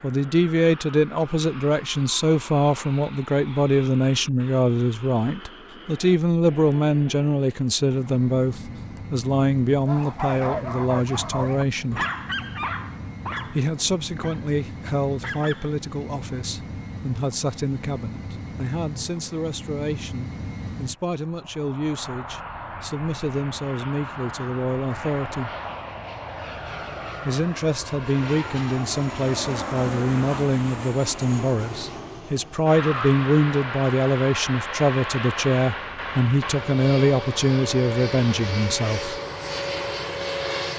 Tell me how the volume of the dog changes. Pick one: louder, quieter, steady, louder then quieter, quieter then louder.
quieter.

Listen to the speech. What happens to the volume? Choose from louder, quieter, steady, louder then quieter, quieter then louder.
quieter then louder.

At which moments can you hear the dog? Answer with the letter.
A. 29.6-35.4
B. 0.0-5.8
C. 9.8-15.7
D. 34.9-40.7
C.